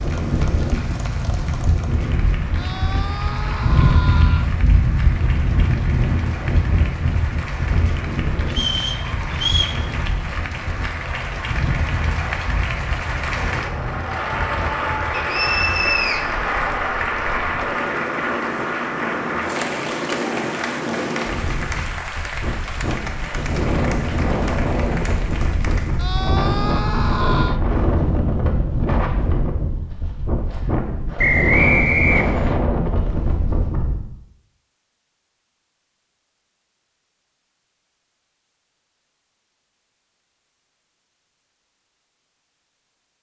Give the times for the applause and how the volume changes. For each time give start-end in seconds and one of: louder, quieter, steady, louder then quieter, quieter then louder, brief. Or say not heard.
0.0-26.2 louder then quieter.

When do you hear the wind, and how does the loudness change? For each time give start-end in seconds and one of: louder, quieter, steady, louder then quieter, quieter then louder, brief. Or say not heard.
0.0-34.0 quieter then louder.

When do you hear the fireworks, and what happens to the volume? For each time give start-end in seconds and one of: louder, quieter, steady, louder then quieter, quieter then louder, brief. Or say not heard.
not heard.